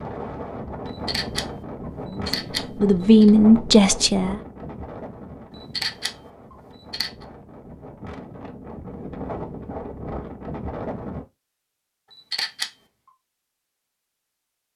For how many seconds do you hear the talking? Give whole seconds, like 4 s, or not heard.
2 s.